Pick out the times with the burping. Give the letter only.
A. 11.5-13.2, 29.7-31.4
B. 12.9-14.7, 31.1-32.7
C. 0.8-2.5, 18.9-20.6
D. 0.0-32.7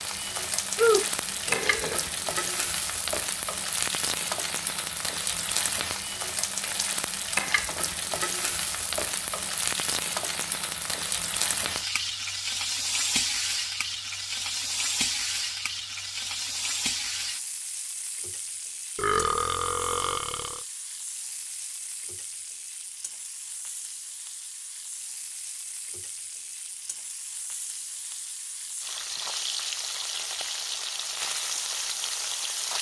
C.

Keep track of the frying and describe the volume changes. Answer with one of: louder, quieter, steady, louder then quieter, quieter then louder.
quieter then louder.